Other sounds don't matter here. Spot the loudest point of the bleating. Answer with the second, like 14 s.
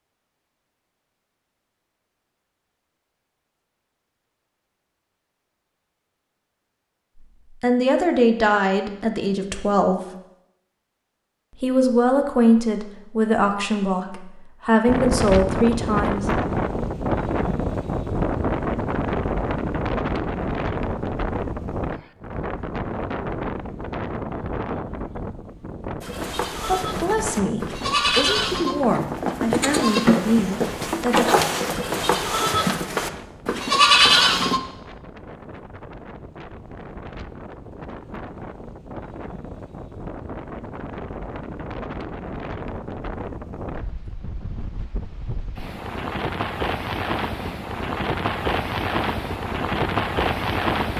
34 s.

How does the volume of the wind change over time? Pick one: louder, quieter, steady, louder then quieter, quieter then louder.
quieter then louder.